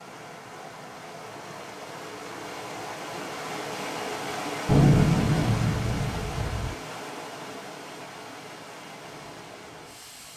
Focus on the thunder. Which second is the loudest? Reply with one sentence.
The volume of the thunder peaks at 5 seconds.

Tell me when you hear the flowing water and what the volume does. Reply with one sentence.
You can hear the flowing water from 0.0 to 10.3 s, getting louder then quieter.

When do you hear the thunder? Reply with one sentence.
The thunder can be heard from 4.7 to 6.7 s.